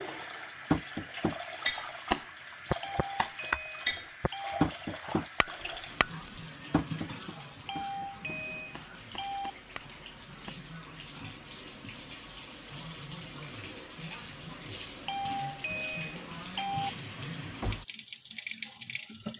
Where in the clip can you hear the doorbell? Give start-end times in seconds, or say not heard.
2.8-4.7, 7.7-9.5, 15.1-16.9.